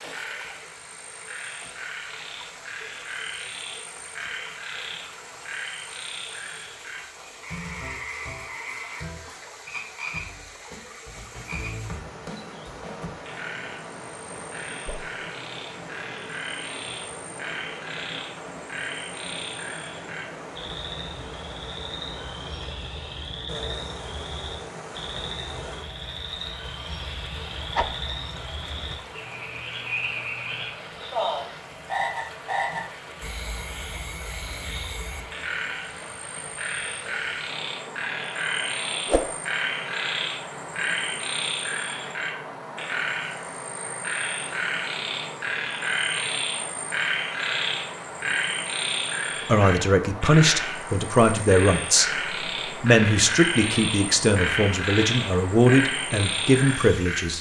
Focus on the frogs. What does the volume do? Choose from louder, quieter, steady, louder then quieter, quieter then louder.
louder.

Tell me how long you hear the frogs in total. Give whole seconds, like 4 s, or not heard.
57 s.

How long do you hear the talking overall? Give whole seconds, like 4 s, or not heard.
8 s.